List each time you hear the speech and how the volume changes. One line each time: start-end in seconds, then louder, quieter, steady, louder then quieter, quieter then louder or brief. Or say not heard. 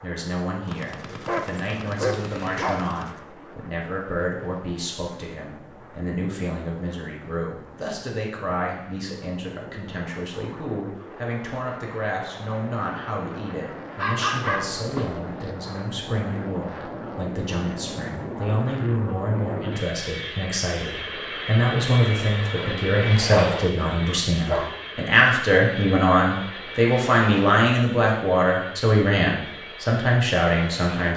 0.0-31.1 louder.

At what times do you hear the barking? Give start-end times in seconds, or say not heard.
1.2-2.8, 13.9-15.5, 22.6-24.8.